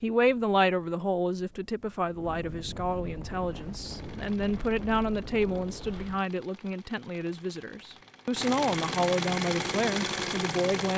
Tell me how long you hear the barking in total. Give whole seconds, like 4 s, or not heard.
not heard.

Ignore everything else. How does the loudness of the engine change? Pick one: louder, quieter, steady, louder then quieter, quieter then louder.
louder.